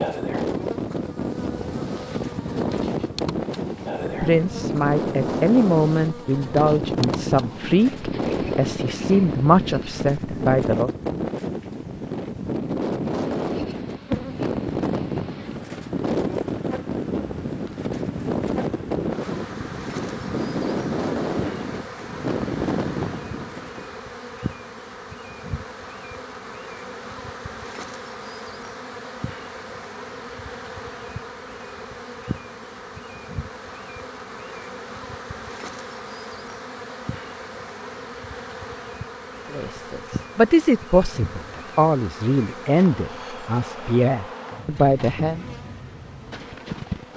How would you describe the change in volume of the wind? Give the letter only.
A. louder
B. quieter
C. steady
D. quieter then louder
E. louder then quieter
C.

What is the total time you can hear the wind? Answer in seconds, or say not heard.
24 s.